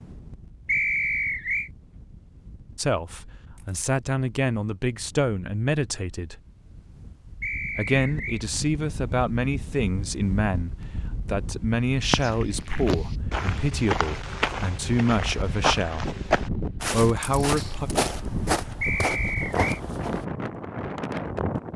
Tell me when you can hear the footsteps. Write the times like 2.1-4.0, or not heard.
12.1-20.2.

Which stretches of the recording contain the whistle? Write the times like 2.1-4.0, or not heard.
0.7-1.7, 7.4-8.4, 18.8-19.8.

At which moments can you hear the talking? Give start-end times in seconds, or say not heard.
2.8-6.3, 7.7-16.1, 16.9-17.9.